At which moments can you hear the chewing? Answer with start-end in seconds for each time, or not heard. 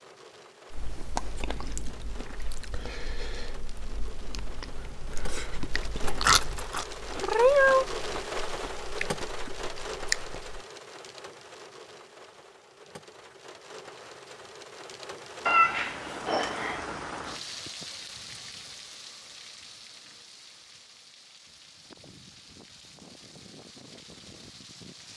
0.7-10.6.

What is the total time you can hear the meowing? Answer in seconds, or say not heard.
3 s.